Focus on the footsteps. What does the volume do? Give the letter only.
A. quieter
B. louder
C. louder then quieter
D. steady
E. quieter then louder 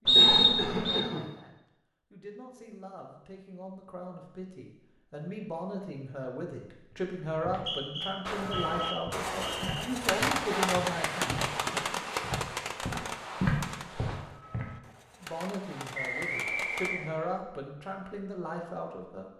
B.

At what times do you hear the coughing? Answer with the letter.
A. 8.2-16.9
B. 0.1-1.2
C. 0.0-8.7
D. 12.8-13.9
B.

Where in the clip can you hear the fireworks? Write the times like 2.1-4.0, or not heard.
8.2-16.9.